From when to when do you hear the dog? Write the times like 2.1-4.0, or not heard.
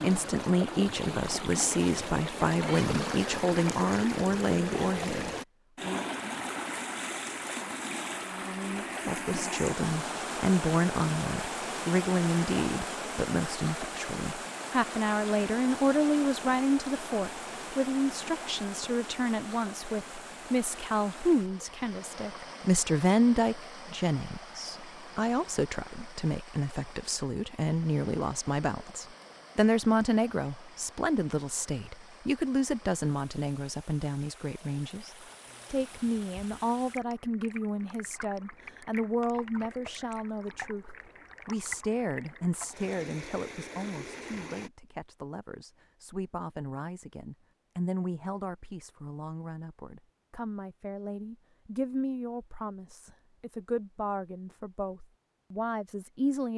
not heard.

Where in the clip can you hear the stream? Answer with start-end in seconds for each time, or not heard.
0.0-44.7.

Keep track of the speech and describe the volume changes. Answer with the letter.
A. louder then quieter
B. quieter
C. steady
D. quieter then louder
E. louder
B.